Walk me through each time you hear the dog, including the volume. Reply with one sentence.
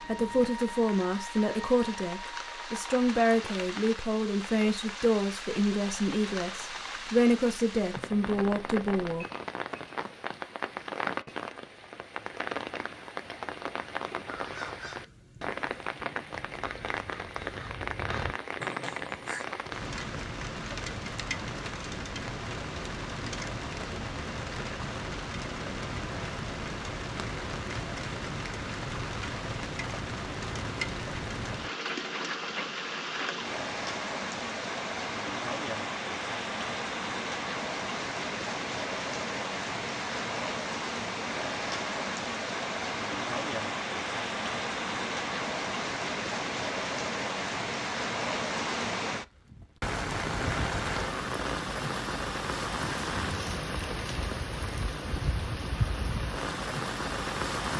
You can't hear the dog here.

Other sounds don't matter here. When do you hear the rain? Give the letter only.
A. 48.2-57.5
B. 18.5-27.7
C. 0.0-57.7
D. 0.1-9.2
C.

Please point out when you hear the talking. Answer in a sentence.
You can hear the talking from 0.1 to 9.2 s.